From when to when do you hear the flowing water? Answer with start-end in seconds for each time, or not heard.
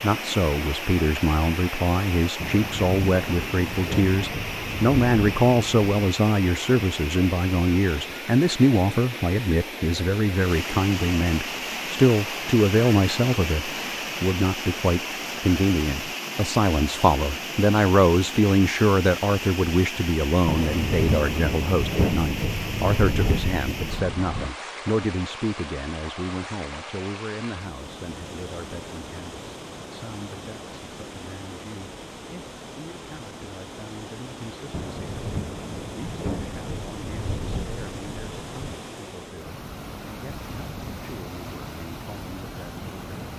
0.0-43.3.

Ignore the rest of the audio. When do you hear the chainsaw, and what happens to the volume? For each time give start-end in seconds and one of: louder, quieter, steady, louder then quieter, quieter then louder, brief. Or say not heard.
not heard.